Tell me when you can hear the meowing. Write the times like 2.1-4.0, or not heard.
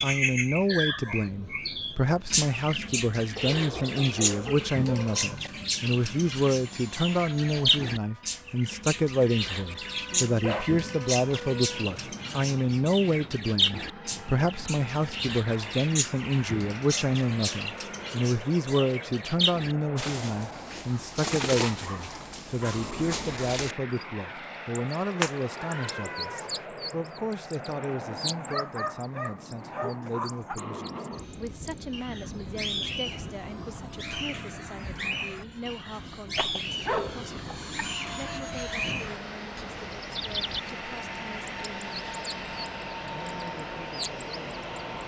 25.1-26.6.